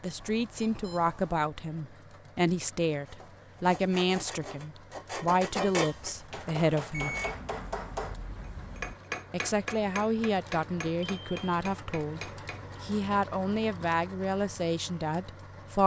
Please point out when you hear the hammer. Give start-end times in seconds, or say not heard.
6.2-12.7.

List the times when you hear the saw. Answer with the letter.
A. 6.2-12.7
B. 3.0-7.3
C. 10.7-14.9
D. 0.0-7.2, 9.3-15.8
B.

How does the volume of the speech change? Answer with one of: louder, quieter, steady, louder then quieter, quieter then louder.
steady.